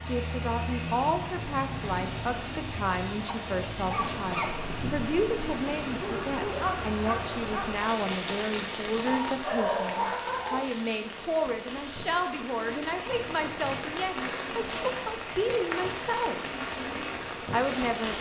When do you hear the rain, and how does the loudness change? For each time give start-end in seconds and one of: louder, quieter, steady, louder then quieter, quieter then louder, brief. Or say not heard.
0.0-18.1 steady.